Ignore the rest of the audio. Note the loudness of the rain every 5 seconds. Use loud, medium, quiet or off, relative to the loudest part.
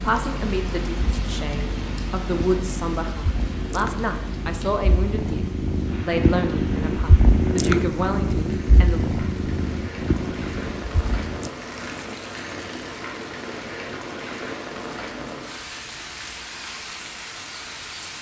loud, medium, loud, loud.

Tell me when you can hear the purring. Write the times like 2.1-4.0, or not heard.
0.0-11.5.